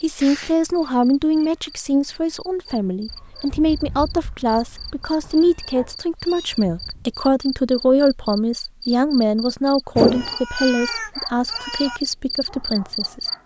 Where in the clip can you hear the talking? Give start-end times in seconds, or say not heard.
0.0-13.4.